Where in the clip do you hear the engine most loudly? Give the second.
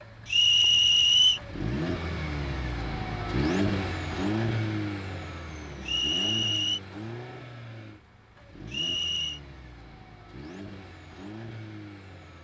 4 s.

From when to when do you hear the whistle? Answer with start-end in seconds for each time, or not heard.
0.2-1.4, 5.8-6.8, 8.7-9.4.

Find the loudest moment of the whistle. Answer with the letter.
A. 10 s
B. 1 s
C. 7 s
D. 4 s
B.